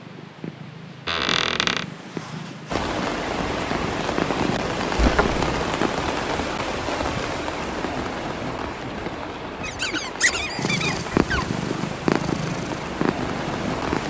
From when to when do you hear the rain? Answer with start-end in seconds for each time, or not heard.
2.6-14.0.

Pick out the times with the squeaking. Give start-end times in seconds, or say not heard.
1.1-1.9, 5.0-5.6, 9.6-11.6.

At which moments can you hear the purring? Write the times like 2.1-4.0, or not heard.
0.0-6.1, 10.6-14.0.